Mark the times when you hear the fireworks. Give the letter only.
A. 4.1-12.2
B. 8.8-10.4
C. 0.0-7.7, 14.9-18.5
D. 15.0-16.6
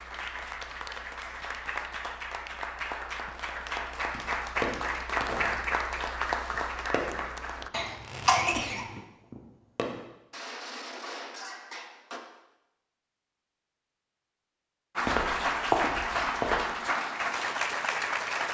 A.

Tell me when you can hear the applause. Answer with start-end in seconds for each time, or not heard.
0.0-7.7, 14.9-18.5.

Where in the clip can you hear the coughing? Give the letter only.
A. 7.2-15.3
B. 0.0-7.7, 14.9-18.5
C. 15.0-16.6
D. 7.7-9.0
D.